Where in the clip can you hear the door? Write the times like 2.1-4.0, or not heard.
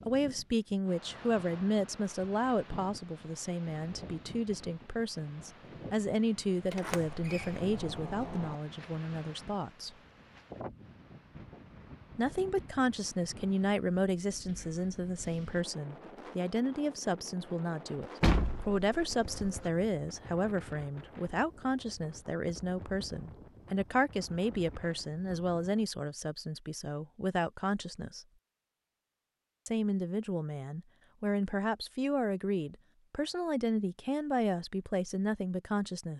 6.7-8.6, 18.2-19.7.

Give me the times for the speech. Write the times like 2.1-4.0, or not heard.
0.1-9.9, 12.2-28.2, 29.6-36.1.